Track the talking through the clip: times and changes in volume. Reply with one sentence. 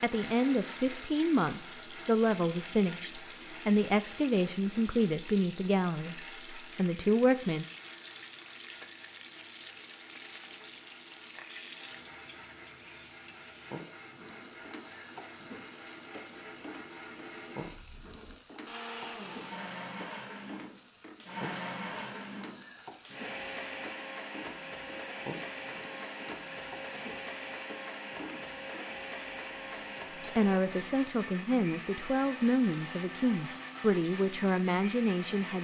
You can hear the talking from 0.0 to 7.7 s, at a steady volume; and from 30.4 to 35.5 s, at a steady volume.